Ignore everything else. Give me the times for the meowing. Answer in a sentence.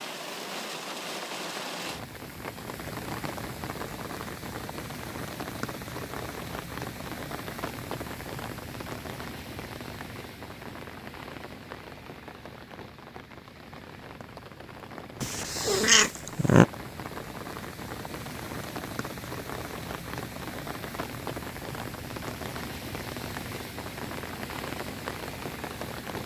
The meowing can be heard from 15.2 to 16.6 s.